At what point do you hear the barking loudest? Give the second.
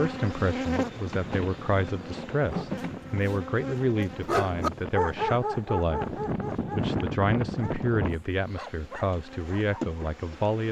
5 s.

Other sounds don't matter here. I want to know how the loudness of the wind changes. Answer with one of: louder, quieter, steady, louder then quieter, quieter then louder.
louder.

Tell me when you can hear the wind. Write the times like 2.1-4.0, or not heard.
0.0-8.2.